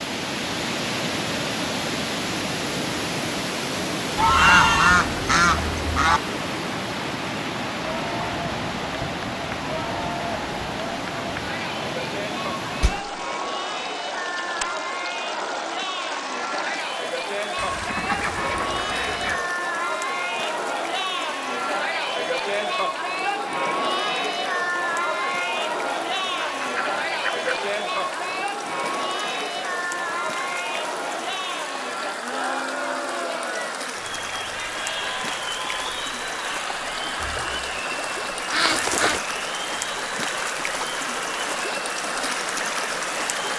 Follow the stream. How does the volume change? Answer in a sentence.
The volume of the stream goes down, then up.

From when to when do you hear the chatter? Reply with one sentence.
The chatter can be heard from 7.8 to 43.5 s.